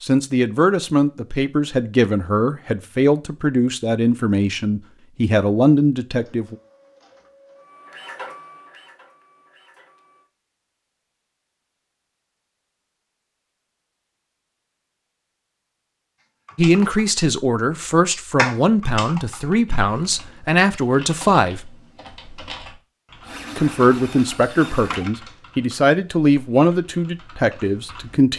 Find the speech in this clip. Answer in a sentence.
You can hear the speech from 0.0 to 6.5 s, from 16.6 to 21.7 s and from 23.6 to 28.3 s.